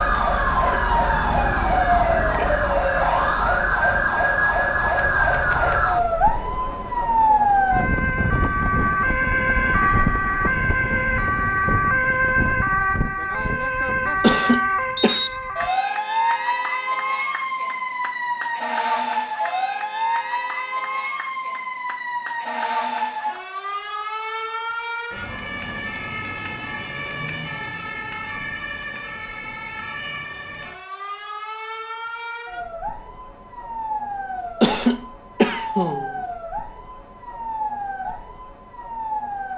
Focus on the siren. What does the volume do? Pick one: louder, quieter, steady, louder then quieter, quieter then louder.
quieter.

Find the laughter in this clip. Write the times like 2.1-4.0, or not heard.
14.2-15.2, 34.6-36.1.